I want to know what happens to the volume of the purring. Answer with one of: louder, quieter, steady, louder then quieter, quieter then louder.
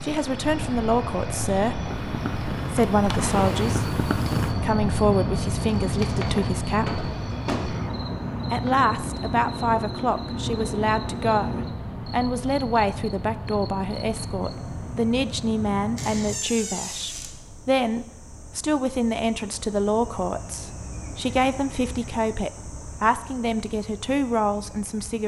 louder.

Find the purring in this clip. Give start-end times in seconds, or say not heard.
0.0-4.5.